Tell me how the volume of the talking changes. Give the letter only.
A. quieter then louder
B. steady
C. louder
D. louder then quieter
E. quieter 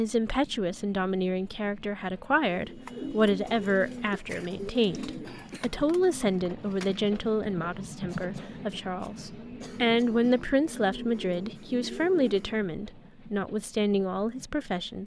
B.